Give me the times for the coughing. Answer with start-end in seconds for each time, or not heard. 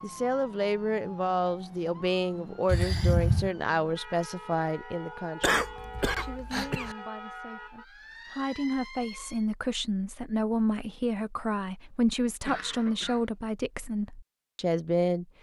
2.6-3.5, 5.4-7.0, 12.2-13.2.